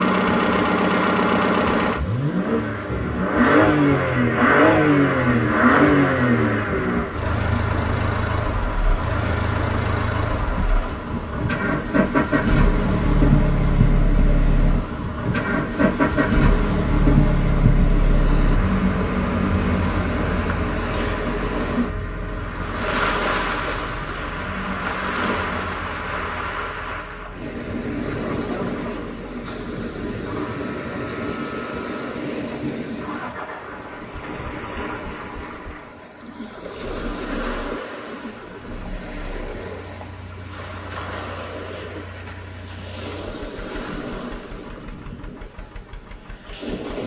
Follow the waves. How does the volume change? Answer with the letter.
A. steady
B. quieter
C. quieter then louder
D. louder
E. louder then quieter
E.